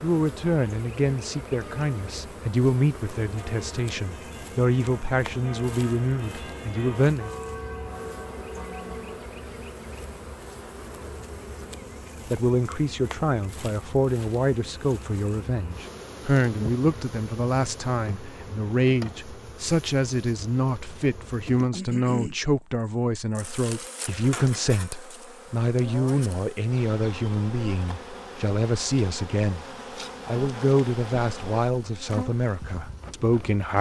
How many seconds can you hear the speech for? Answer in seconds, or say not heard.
28 s.